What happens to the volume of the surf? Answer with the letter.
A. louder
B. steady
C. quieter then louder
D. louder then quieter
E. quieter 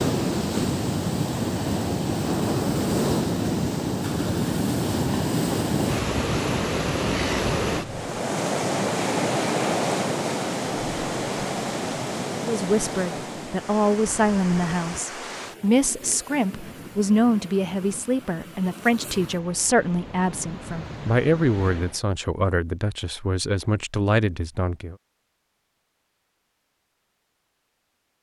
E.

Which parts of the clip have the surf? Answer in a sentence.
The surf can be heard from 0.0 to 22.0 s.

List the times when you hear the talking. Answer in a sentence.
The talking can be heard from 12.3 to 24.9 s.